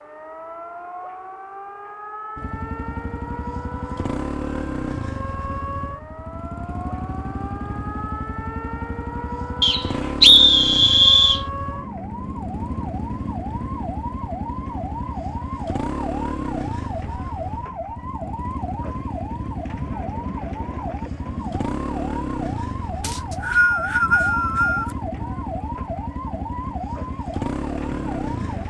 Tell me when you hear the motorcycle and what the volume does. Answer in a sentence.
The motorcycle can be heard from 2.4 to 28.6 s, at a steady volume.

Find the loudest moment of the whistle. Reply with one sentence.
The loudest moment of the whistle is at 10 seconds.